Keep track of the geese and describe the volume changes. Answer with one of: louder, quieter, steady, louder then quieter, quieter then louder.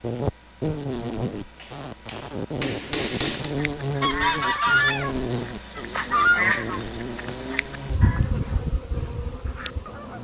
quieter.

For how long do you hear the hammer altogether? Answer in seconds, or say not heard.
2 s.